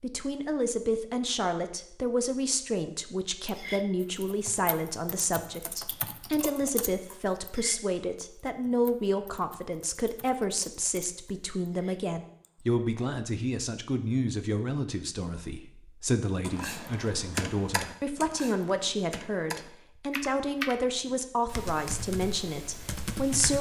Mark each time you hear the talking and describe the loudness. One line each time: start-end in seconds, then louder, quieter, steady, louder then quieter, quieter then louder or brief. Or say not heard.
0.0-23.5 steady.